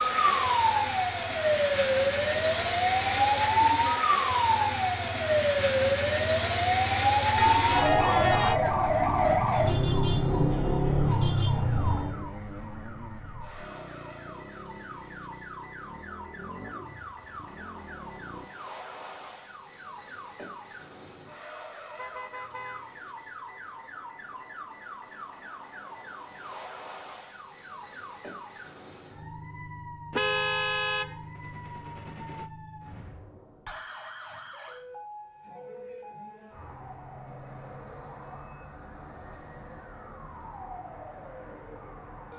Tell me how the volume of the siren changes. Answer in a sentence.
The loudness of the siren goes down.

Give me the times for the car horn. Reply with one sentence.
The car horn can be heard from 7.3 to 8.6 s, from 21.9 to 22.9 s and from 30.1 to 32.5 s.